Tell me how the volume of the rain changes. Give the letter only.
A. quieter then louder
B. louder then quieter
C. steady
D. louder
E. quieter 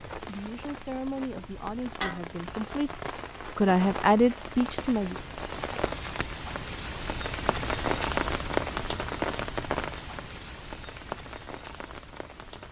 B.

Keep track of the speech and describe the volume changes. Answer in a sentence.
The loudness of the speech goes up.